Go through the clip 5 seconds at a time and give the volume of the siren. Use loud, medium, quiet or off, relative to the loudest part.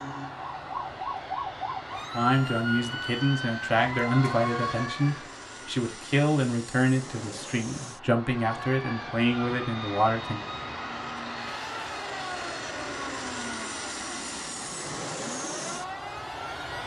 loud, medium, medium, medium.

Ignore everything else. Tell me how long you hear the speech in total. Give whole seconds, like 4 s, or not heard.
8 s.